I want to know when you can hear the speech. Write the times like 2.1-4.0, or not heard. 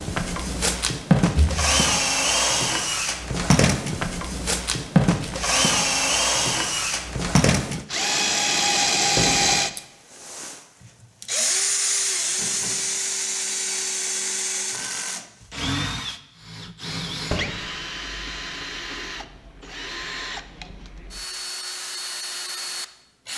not heard.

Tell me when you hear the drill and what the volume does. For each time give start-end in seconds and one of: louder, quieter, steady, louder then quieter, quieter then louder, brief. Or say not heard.
0.0-23.3 quieter.